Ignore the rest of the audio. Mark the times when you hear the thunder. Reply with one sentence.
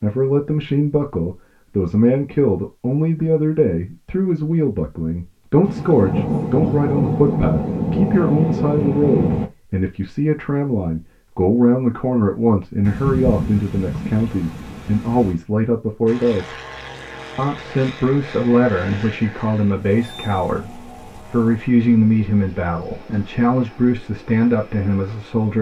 The thunder can be heard from 5.7 to 9.5 s and from 12.8 to 15.3 s.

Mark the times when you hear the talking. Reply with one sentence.
You can hear the talking from 0.0 to 16.6 s and from 17.4 to 25.5 s.